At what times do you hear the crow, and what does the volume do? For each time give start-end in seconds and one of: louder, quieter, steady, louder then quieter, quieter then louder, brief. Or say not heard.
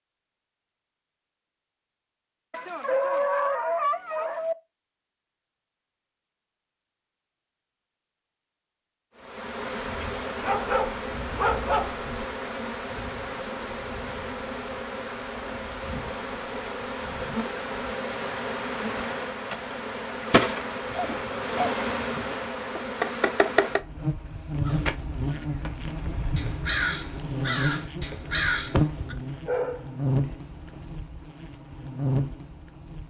24.6-29.1 louder.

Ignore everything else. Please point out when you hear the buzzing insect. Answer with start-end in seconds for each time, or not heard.
9.2-33.0.